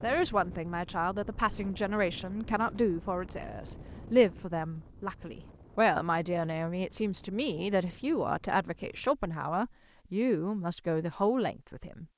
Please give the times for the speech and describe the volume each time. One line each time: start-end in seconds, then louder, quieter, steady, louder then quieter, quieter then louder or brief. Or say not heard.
0.0-12.1 steady.